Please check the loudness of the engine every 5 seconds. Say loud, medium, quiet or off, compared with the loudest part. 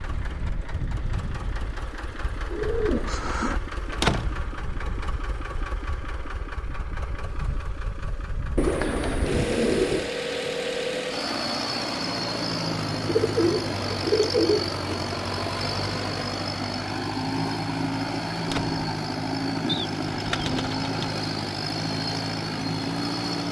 medium, medium, loud, loud, loud.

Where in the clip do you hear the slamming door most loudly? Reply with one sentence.
The volume of the slamming door peaks at 4 seconds.